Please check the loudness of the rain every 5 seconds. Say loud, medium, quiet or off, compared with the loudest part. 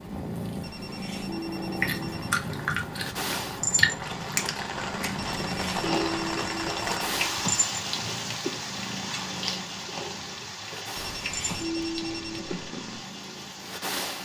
medium, loud, medium.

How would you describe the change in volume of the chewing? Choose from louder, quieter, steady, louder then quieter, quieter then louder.
quieter.